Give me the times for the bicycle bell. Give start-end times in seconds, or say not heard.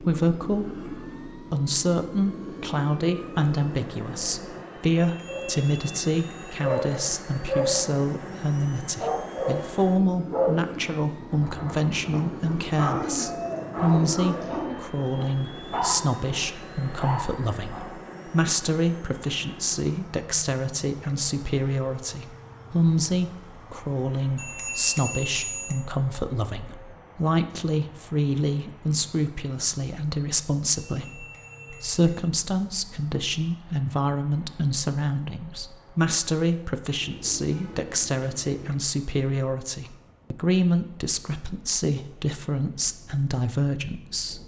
5.0-6.6, 24.4-25.8, 30.9-32.2.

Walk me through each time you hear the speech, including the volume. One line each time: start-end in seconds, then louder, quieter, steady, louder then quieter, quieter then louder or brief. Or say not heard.
0.0-44.4 steady.